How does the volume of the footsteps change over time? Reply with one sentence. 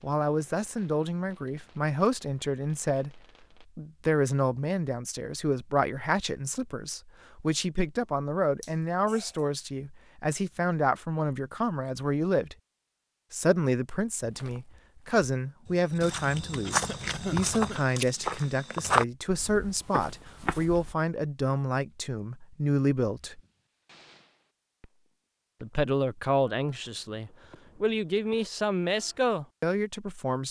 The volume of the footsteps goes up, then down.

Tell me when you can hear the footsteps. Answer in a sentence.
The footsteps can be heard from 14.2 to 20.9 s.